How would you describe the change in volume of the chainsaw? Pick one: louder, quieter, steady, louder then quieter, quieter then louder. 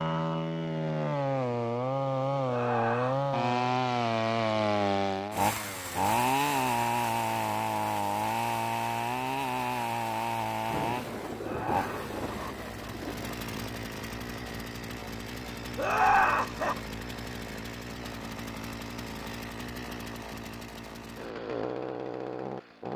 quieter.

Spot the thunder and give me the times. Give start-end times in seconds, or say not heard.
10.7-13.4.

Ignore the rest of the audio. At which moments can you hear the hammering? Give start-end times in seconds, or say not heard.
not heard.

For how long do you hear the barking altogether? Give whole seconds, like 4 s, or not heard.
not heard.